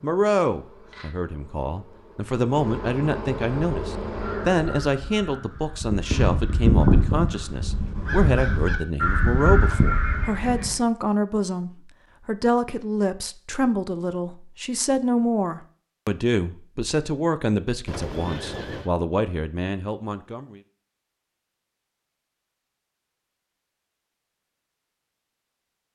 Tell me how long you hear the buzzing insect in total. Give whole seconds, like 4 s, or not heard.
5 s.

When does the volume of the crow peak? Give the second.
7 s.